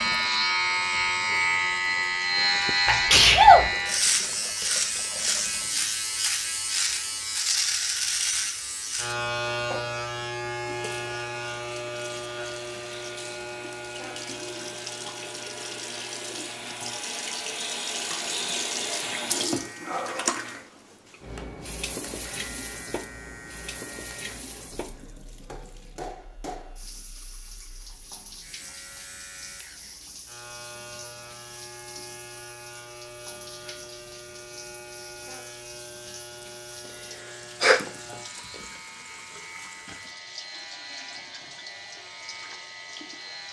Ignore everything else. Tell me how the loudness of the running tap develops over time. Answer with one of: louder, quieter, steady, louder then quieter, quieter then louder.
louder then quieter.